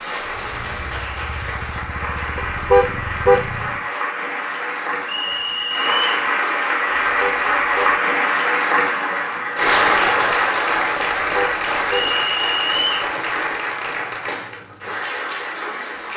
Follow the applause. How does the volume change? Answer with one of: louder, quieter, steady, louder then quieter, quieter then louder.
louder then quieter.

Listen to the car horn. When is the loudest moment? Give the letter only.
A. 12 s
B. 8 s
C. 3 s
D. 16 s
C.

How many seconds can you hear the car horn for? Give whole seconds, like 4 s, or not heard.
3 s.